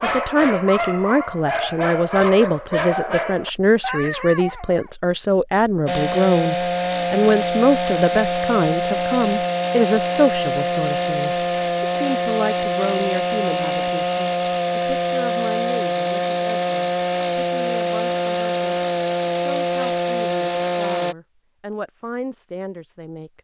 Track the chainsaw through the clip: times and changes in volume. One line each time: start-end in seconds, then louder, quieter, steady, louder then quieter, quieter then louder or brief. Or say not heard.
5.8-21.1 steady.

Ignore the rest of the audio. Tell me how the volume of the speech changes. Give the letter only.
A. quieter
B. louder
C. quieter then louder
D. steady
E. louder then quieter
A.